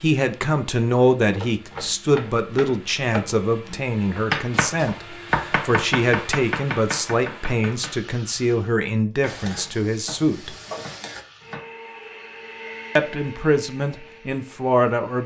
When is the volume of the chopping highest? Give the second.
4 s.